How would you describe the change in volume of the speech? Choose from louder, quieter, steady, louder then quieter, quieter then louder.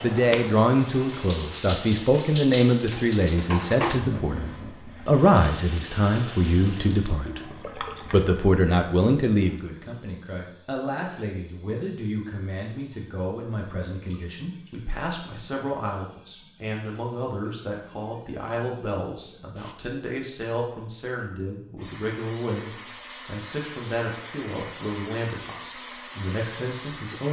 quieter.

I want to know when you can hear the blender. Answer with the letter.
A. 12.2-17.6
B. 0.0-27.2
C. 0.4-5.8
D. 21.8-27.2
D.